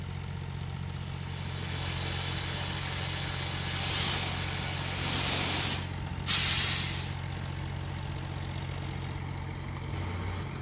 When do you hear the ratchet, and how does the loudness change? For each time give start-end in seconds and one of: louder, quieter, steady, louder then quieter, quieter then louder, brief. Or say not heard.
0.0-5.7 louder.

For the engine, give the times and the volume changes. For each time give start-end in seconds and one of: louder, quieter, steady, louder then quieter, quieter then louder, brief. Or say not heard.
0.0-10.5 steady.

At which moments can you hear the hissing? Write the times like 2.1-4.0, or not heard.
3.5-7.2.